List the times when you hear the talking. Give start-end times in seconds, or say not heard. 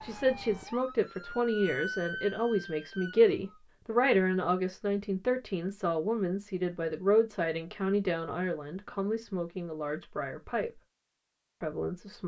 0.0-10.8, 11.6-12.2.